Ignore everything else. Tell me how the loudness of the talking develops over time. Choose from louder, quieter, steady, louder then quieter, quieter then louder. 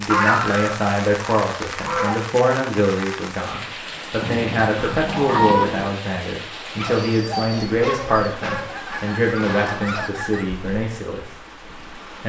steady.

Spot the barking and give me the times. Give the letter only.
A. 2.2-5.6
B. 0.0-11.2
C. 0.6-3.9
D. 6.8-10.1
D.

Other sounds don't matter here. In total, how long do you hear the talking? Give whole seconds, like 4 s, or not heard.
11 s.